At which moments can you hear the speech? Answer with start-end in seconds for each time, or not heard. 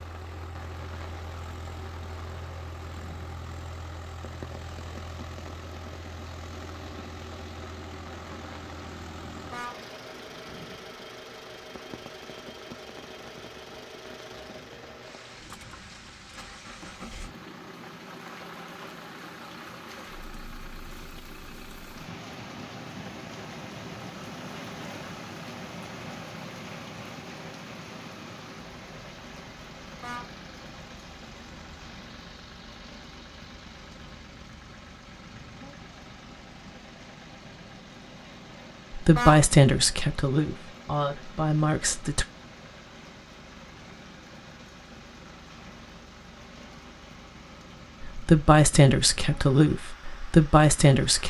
39.0-42.2, 48.0-51.2.